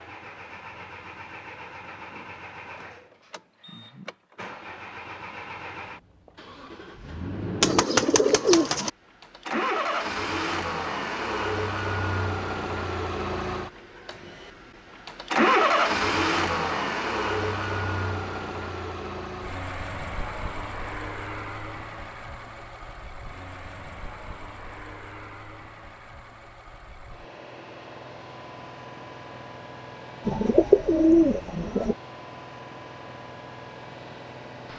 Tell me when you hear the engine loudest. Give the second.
16 s.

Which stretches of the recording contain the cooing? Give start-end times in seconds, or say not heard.
7.6-8.9, 30.2-31.9.